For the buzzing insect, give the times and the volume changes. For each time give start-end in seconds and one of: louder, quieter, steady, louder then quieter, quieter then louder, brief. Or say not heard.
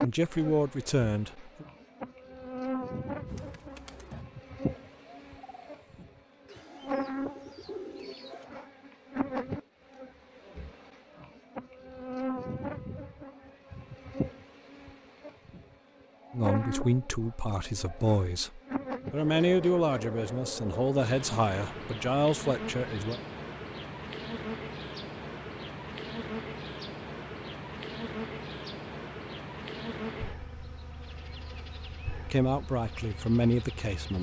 0.0-34.1 steady.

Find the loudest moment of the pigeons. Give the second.
8 s.